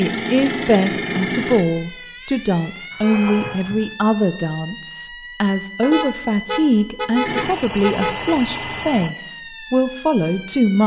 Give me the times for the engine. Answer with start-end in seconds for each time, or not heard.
0.0-1.6, 7.2-9.2.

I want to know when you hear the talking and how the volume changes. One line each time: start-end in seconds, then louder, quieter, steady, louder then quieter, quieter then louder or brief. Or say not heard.
0.0-10.8 steady.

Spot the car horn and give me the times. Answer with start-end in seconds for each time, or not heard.
2.9-4.0, 5.8-8.3.